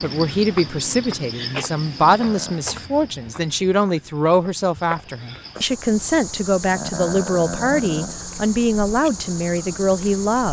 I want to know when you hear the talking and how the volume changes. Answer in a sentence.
The talking can be heard from 0.0 to 10.4 s, at a steady volume.